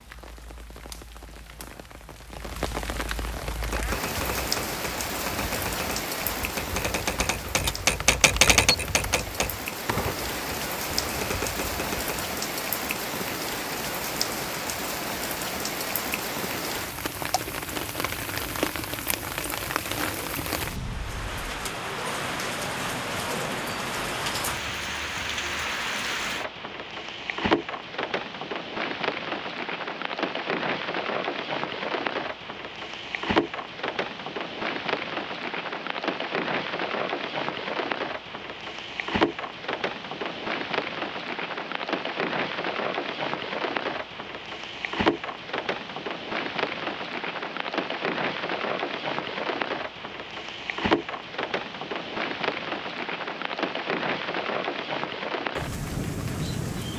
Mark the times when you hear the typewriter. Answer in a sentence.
The typewriter can be heard from 3.5 to 12.3 s.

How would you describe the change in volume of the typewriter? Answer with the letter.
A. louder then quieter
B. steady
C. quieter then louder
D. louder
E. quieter
A.